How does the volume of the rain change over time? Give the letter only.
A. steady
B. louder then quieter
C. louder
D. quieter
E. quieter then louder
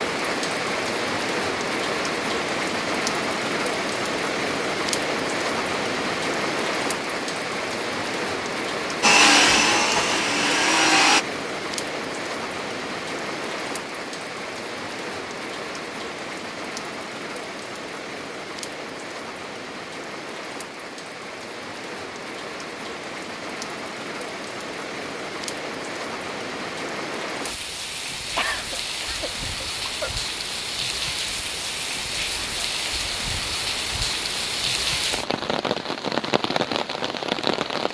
E.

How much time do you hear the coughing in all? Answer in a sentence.
You can hear the coughing for 2 seconds altogether.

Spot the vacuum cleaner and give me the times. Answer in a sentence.
The vacuum cleaner can be heard from 9.0 to 11.2 s.